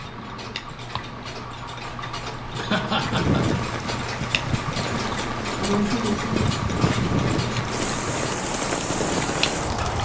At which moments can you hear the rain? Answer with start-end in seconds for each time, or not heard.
3.0-10.0.